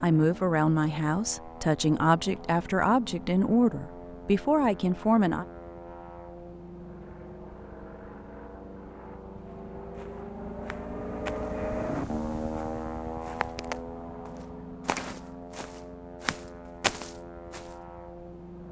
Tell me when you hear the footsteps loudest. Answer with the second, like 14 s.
17 s.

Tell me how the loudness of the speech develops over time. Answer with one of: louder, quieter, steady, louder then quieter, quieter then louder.
steady.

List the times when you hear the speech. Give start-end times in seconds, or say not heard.
0.0-5.5.